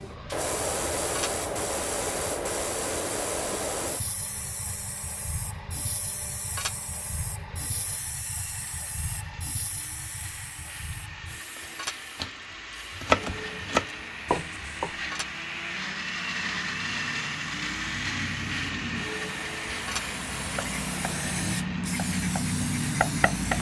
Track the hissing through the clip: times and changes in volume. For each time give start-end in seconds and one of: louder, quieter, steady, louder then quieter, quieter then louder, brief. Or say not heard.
0.0-23.5 quieter then louder.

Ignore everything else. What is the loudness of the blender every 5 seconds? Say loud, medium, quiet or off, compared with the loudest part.
quiet, quiet, medium, loud, medium.